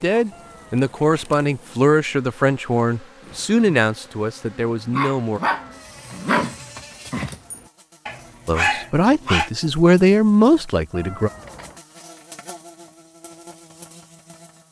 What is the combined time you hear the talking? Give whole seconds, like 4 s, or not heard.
8 s.